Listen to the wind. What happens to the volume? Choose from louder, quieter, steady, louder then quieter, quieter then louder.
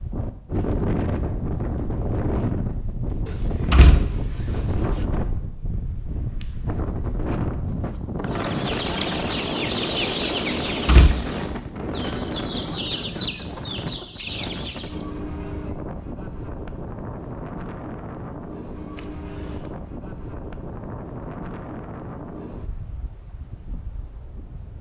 quieter.